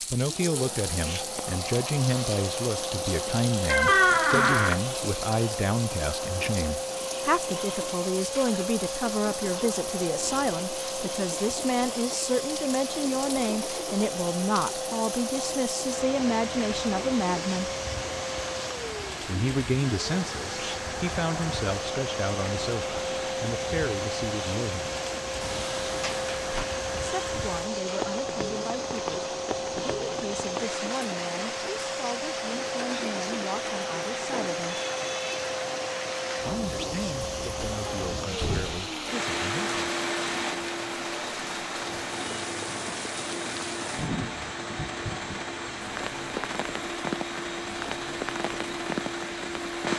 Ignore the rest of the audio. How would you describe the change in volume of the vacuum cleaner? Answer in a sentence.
The volume of the vacuum cleaner stays about the same.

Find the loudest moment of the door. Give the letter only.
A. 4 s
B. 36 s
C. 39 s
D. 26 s
A.